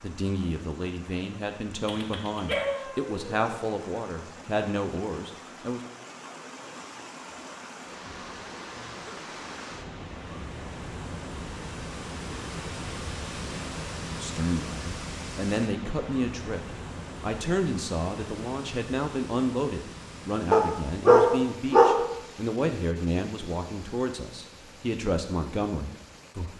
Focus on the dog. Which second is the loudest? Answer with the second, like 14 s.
21 s.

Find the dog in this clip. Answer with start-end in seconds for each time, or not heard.
1.9-3.6, 20.5-21.9.